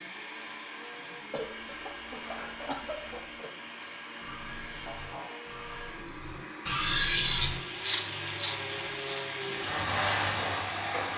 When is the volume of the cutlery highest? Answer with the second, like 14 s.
7 s.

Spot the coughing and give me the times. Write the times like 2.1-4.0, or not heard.
1.3-3.5.